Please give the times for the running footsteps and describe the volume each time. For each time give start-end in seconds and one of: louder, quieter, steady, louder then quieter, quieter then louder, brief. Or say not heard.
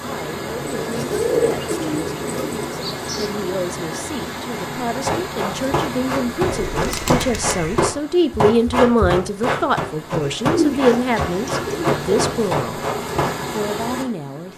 5.0-13.3 steady.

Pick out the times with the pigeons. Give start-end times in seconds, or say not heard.
0.7-3.4, 6.4-8.0, 10.2-12.0.